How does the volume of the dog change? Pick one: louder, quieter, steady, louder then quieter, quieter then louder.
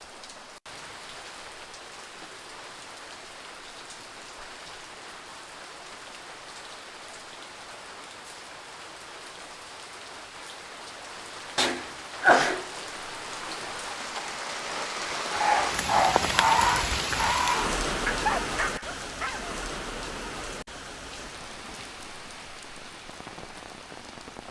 quieter.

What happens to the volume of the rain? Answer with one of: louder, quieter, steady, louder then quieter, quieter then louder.
louder then quieter.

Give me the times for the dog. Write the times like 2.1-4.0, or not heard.
15.3-19.5.